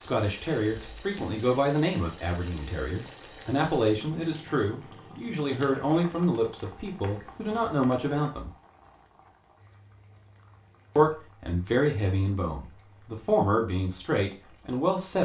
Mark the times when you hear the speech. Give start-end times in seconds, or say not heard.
0.0-8.5, 10.9-15.2.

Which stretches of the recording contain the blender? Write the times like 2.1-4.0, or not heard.
not heard.